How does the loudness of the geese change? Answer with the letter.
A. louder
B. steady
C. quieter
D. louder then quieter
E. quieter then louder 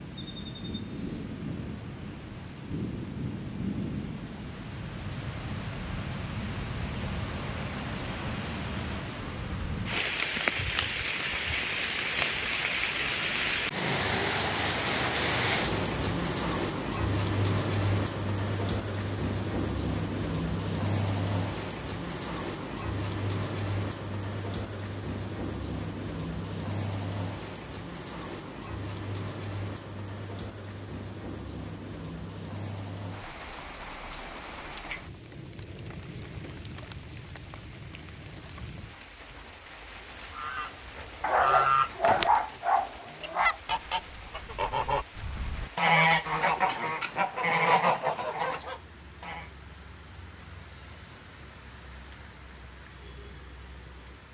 E.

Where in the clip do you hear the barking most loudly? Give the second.
42 s.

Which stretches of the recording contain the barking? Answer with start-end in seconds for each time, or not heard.
41.2-43.5.